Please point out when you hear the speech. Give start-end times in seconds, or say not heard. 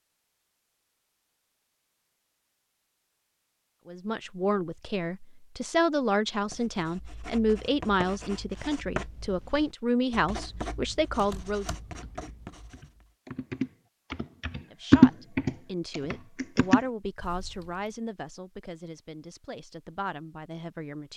3.9-11.7, 14.7-21.1.